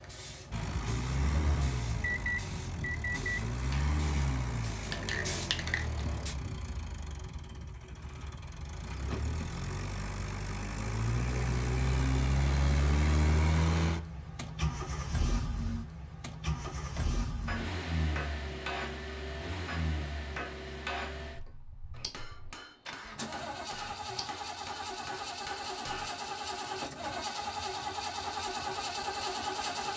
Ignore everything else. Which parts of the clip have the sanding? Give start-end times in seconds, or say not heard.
not heard.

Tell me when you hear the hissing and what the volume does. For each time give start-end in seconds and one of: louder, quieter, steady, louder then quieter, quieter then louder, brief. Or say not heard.
0.0-6.3 louder.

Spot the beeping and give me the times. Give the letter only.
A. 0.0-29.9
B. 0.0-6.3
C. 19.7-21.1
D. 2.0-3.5
D.